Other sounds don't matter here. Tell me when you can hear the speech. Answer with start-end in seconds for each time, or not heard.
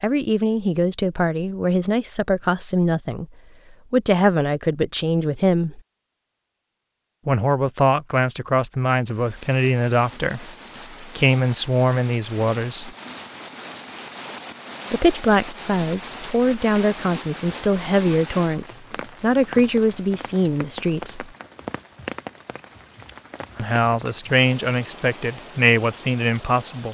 0.0-3.2, 3.9-5.8, 7.2-12.9, 14.9-21.2, 23.6-26.8.